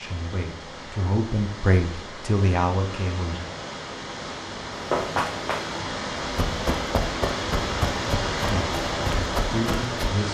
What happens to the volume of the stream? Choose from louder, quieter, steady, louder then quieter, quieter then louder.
louder.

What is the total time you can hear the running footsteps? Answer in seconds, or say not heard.
5 s.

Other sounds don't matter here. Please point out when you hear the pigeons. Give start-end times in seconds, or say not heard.
not heard.